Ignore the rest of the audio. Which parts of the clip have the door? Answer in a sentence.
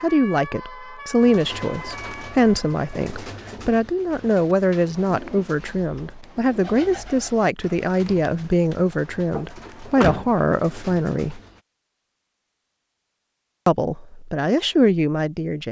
You can hear the door from 9.3 to 10.3 s.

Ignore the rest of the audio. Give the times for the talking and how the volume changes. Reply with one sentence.
You can hear the talking from 0.0 to 11.4 s, at a steady volume; and briefly from 13.7 to 15.6 s.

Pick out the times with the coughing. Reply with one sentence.
You can't hear the coughing here.